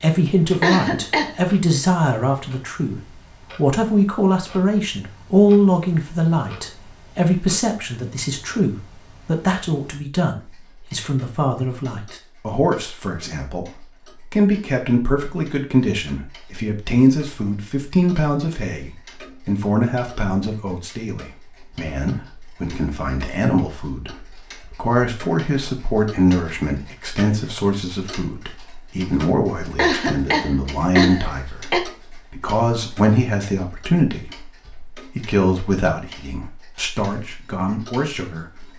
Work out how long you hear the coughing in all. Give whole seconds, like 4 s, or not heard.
3 s.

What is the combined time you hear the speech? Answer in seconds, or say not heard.
38 s.